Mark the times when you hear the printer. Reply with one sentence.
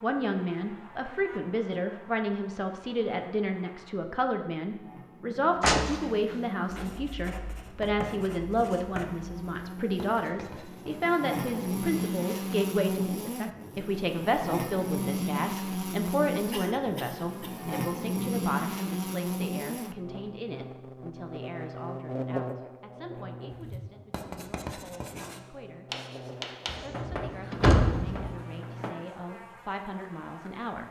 The printer can't be heard in this clip.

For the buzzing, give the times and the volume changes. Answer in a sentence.
You can hear the buzzing from 0.0 to 30.8 s, getting louder then quieter.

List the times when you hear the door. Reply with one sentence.
The door can be heard from 5.6 to 6.8 s and from 26.6 to 28.3 s.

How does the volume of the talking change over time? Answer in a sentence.
The loudness of the talking goes down.